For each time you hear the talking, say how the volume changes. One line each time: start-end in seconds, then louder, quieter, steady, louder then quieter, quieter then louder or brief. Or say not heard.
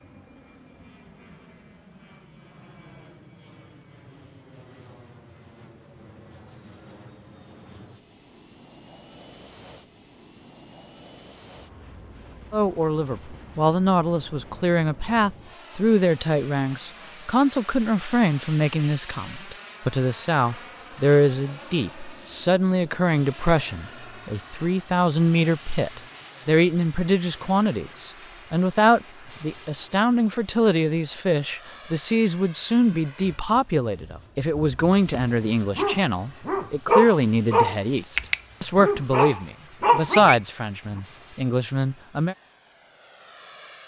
12.5-42.4 steady.